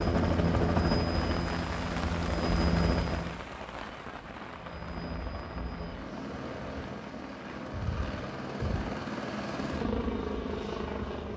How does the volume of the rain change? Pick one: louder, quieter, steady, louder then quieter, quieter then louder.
quieter.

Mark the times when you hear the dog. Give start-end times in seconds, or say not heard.
not heard.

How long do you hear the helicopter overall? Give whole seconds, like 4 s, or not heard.
10 s.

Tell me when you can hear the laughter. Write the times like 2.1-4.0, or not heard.
not heard.